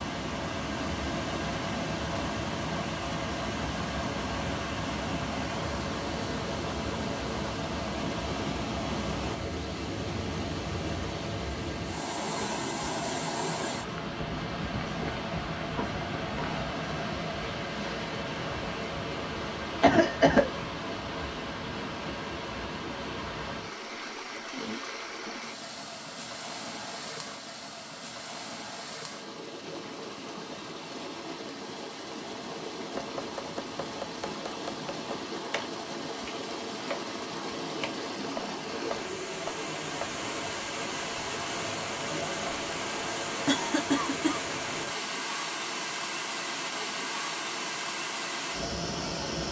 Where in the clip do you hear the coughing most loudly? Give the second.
20 s.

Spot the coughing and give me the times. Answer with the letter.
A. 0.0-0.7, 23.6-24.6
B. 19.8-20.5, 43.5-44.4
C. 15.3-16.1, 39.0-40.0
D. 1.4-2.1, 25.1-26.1
B.